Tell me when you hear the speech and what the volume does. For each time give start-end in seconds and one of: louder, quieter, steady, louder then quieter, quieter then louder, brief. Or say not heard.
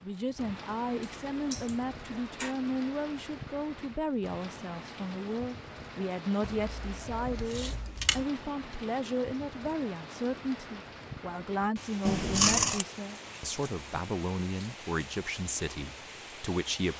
0.0-16.9 steady.